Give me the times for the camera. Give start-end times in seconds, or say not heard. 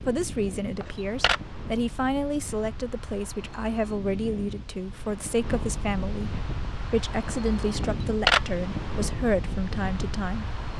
0.8-1.4, 7.8-8.6.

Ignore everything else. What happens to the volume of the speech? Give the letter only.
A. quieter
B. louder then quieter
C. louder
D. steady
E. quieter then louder
D.